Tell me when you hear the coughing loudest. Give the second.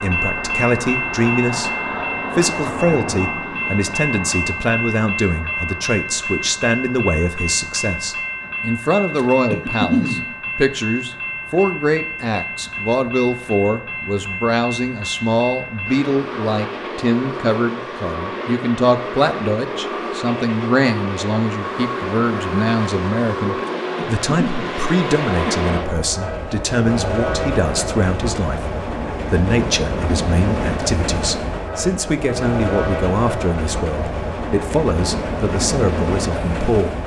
10 s.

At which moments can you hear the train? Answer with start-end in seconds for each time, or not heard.
0.0-37.0.